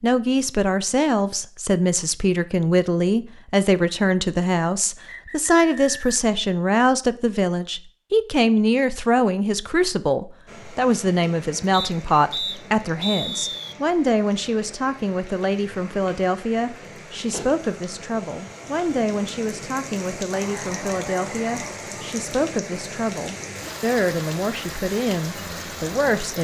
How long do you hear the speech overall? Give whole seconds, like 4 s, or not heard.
26 s.